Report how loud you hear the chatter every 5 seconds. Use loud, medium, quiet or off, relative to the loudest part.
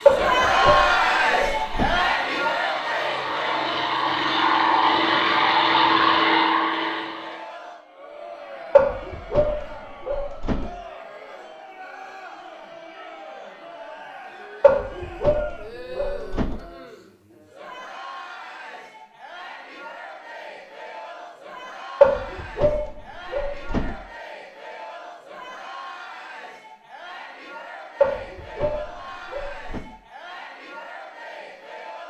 loud, quiet, quiet, quiet, quiet, quiet, quiet.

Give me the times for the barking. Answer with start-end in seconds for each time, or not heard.
0.1-2.0, 8.8-10.7, 14.6-16.6, 22.0-23.9, 28.0-29.9.